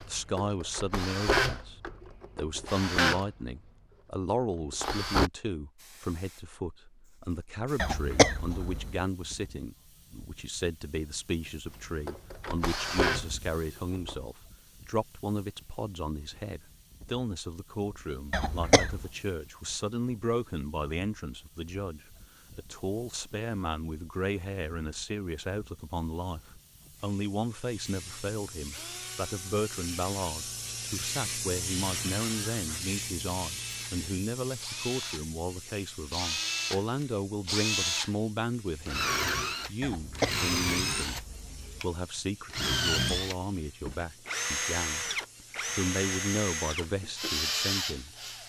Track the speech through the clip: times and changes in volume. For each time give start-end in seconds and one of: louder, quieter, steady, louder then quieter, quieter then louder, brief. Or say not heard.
0.1-1.8 brief
2.4-48.1 steady.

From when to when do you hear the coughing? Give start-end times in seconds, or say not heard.
7.8-8.9, 18.3-19.1, 39.8-41.8.